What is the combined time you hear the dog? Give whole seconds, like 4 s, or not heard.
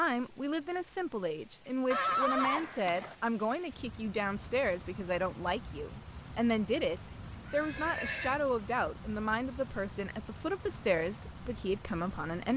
not heard.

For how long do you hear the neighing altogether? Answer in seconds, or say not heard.
2 s.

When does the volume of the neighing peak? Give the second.
2 s.